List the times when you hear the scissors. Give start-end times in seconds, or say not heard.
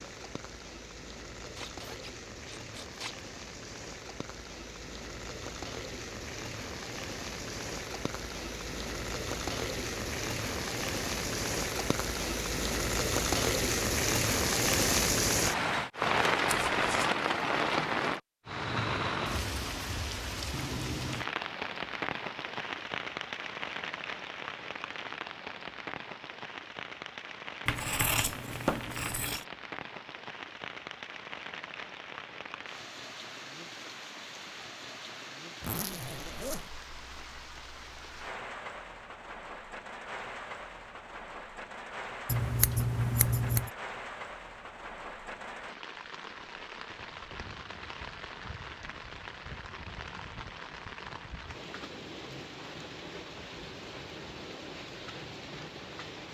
16.4-17.1, 27.6-29.4, 42.2-43.7.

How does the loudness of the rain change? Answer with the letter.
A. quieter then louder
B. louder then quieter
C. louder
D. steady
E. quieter
B.